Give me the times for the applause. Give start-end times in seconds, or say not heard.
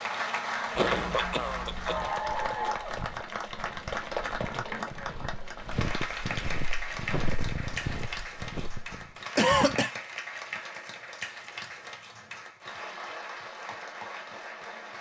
0.0-14.9.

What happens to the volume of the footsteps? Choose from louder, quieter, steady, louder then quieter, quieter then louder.
louder.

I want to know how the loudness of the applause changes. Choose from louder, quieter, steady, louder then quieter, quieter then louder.
quieter.